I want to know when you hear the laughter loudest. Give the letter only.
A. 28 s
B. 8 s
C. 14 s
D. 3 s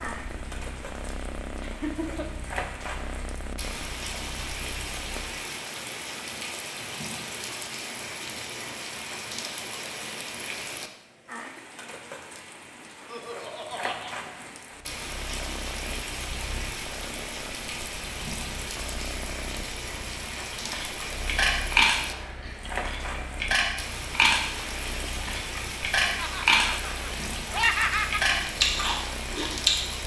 A.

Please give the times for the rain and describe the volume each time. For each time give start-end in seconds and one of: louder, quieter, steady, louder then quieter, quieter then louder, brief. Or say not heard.
0.0-30.0 steady.